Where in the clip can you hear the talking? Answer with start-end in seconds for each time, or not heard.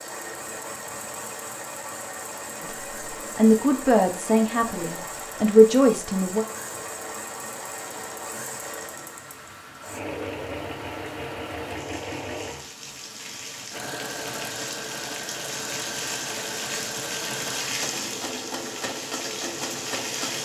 2.6-6.5.